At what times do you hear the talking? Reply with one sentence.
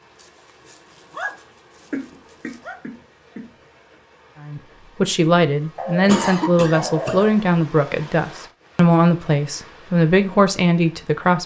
The talking can be heard from 4.4 to 11.4 s.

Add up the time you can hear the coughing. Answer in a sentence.
You can hear the coughing for 3 seconds altogether.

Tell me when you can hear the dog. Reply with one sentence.
The dog can be heard from 0.1 to 2.8 s and from 5.8 to 7.3 s.